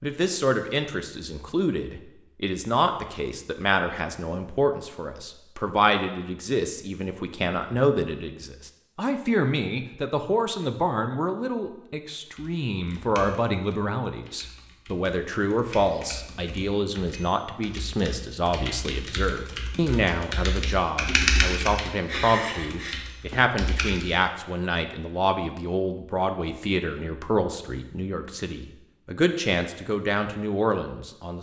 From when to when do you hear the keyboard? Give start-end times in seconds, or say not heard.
12.3-24.1.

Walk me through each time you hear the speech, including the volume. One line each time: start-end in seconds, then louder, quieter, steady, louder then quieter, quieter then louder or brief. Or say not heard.
0.0-31.3 steady.